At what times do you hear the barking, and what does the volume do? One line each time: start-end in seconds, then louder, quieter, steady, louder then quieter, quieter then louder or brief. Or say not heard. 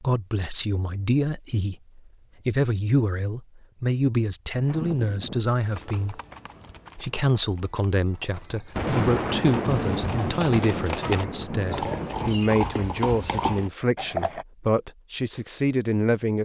not heard.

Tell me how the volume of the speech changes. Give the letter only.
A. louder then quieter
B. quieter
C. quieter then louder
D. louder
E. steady
E.